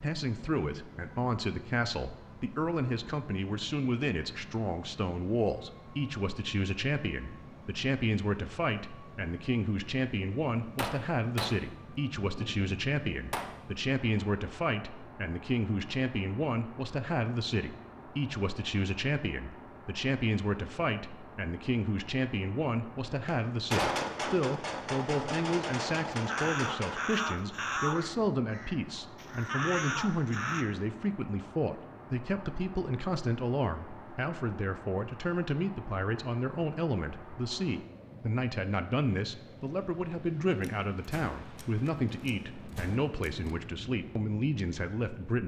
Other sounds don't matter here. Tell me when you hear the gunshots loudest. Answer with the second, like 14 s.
24 s.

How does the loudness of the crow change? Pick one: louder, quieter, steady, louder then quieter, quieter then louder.
quieter then louder.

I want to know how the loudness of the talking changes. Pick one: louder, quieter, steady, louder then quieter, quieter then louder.
steady.